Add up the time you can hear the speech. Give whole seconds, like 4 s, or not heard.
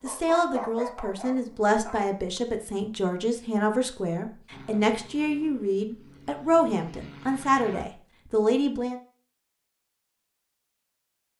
9 s.